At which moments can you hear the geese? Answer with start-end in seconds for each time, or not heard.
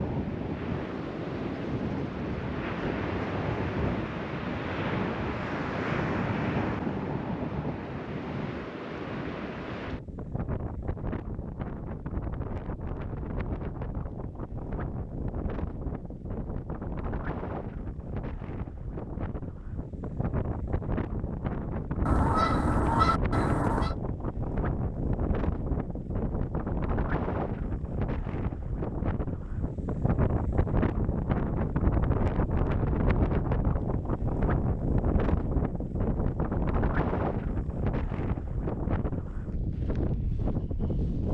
22.1-23.9.